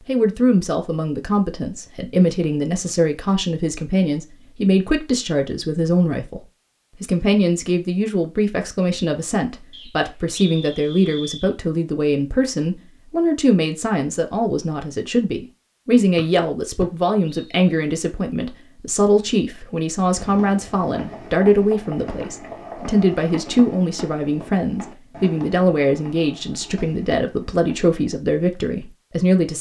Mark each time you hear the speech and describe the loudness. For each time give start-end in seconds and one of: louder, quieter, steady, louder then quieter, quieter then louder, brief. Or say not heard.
0.1-29.5 steady.